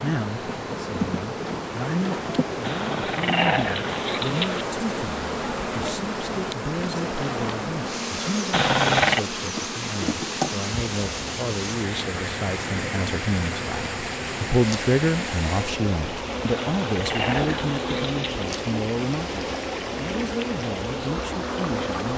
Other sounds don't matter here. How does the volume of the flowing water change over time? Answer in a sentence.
The volume of the flowing water stays about the same.